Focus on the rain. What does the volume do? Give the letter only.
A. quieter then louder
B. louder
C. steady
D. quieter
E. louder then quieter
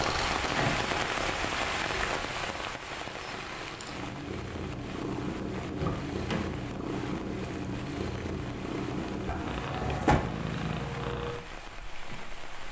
D.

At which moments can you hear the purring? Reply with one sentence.
You can hear the purring from 0.0 to 12.6 s.